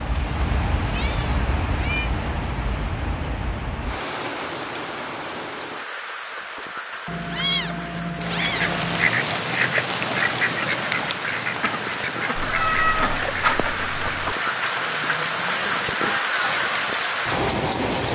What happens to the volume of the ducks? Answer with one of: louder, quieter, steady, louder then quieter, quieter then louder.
quieter.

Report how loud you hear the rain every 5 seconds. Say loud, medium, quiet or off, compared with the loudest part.
medium, medium, medium, loud.